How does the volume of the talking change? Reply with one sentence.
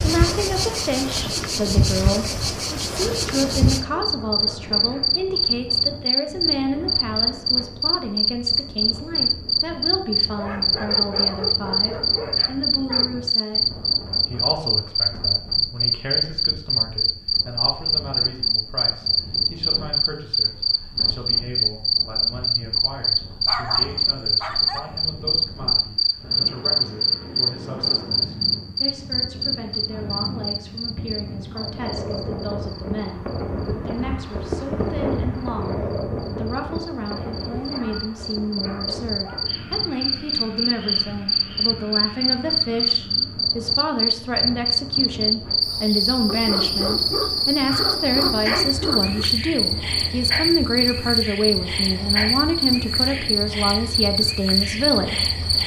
The volume of the talking goes down, then up.